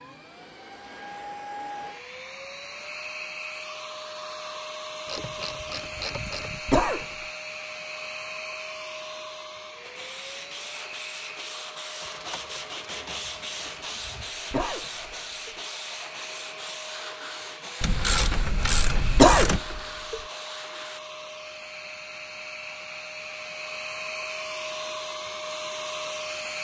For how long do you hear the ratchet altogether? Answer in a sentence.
You can hear the ratchet for 6 seconds altogether.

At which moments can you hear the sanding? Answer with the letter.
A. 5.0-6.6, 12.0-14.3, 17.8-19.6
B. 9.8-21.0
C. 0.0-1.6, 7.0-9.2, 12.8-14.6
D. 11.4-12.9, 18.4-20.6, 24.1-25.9
B.